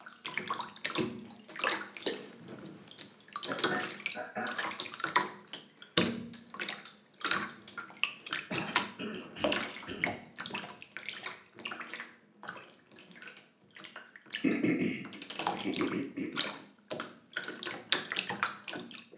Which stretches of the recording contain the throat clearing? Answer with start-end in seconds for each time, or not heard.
3.0-4.5, 8.5-10.2, 14.4-16.4.